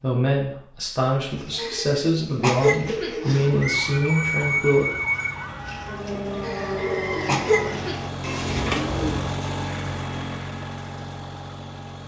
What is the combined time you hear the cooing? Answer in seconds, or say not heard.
8 s.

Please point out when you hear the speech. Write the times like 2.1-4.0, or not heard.
0.0-4.8.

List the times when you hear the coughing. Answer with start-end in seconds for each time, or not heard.
1.6-3.5, 6.4-8.0.